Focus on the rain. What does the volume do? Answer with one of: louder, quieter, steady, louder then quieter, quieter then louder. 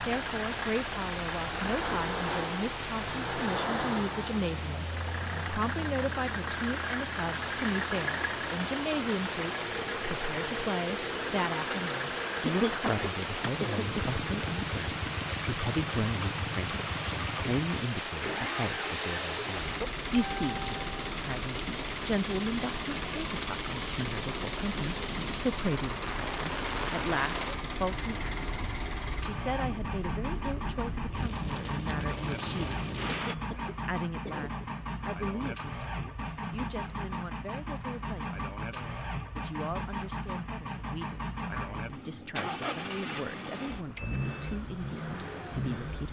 steady.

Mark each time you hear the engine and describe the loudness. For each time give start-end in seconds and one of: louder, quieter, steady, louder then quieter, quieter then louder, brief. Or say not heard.
0.0-46.0 steady.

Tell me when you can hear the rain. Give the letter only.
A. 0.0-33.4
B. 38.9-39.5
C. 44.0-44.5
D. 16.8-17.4
A.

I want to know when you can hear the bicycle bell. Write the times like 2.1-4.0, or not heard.
44.0-44.5.